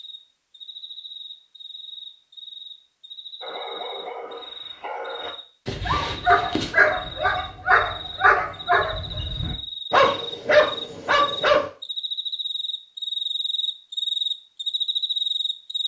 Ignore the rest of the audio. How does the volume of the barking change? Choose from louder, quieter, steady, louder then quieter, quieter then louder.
louder.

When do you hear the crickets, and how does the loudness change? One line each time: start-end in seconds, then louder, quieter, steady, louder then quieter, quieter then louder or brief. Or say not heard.
0.0-15.8 louder.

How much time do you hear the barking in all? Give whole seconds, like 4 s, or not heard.
8 s.